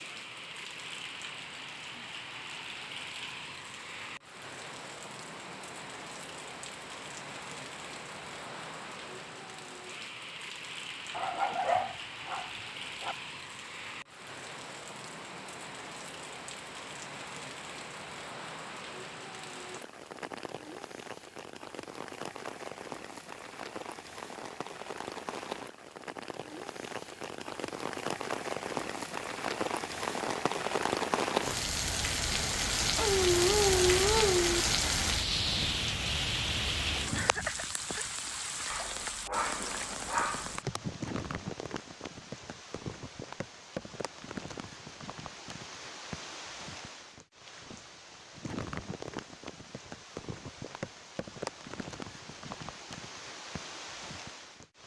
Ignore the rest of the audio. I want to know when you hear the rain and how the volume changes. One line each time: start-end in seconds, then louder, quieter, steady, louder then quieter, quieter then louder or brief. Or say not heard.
0.0-54.8 louder then quieter.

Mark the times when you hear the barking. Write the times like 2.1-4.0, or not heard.
11.1-13.2, 33.0-34.6, 38.7-40.5.